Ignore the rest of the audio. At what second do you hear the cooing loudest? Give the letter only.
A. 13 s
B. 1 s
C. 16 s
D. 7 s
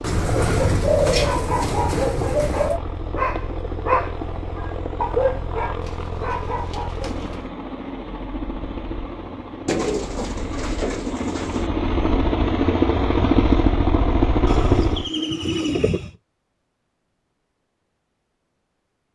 B.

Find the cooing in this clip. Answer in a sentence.
You can hear the cooing from 0.0 to 2.8 s, from 5.8 to 7.5 s, from 9.7 to 11.7 s and from 14.4 to 16.1 s.